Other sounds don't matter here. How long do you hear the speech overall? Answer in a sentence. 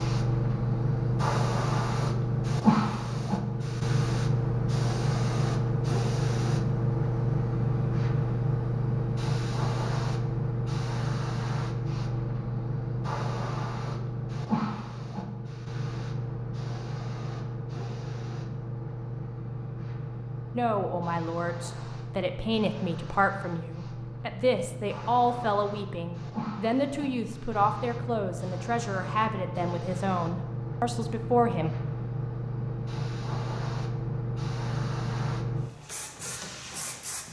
The speech can be heard for 11 seconds in total.